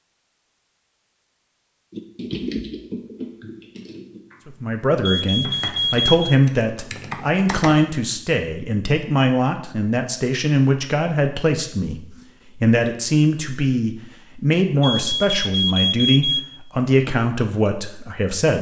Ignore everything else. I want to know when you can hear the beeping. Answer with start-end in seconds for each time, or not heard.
5.0-6.3, 14.8-16.4.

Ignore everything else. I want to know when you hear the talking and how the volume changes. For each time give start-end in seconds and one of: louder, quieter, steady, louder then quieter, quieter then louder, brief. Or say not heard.
4.5-18.5 steady.